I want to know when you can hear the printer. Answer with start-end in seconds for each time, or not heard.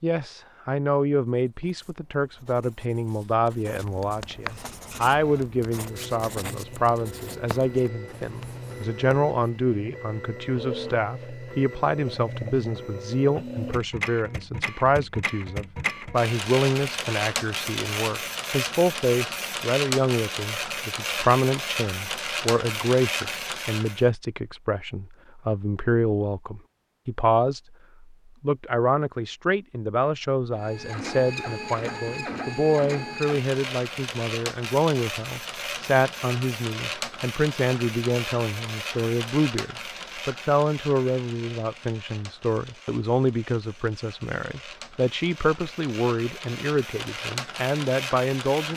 4.4-24.1, 30.6-48.7.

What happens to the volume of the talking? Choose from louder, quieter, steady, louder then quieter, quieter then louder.
steady.